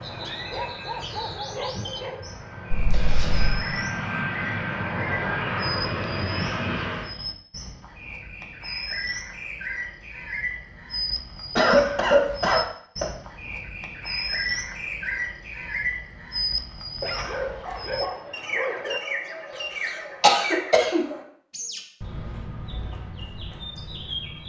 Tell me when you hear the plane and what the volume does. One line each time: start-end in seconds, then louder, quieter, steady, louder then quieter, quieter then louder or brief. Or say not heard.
0.0-7.2 louder.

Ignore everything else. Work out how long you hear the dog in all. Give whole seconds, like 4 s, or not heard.
4 s.